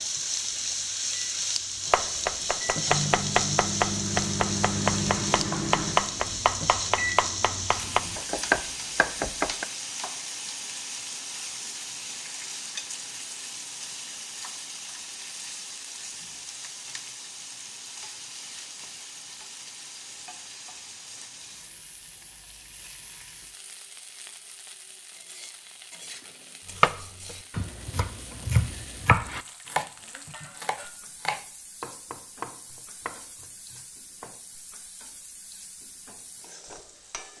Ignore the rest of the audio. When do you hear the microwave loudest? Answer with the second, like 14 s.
5 s.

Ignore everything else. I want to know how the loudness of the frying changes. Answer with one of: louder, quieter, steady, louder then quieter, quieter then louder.
quieter.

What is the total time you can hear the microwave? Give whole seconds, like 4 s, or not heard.
8 s.